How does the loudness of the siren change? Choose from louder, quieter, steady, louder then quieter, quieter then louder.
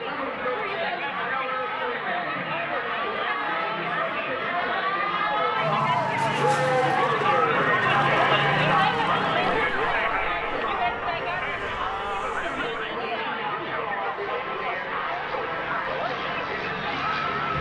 louder then quieter.